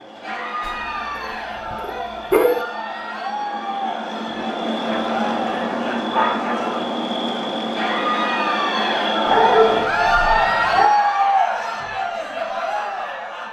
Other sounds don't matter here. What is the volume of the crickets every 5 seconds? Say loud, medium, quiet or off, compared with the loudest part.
medium, loud, off.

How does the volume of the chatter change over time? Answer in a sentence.
The volume of the chatter goes up.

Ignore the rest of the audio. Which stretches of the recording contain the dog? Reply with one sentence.
You can hear the dog from 0.7 to 2.6 s, from 4.9 to 6.8 s and from 9.2 to 10.9 s.